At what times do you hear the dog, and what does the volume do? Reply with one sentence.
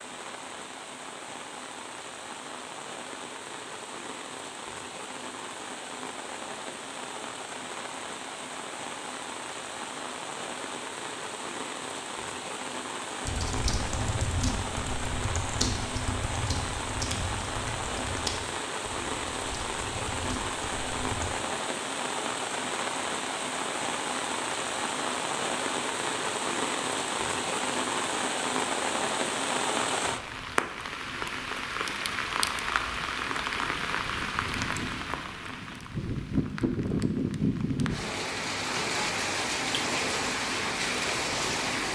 You can't hear the dog here.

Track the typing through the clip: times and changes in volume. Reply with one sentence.
The typing can be heard from 13.2 to 21.3 s, getting quieter.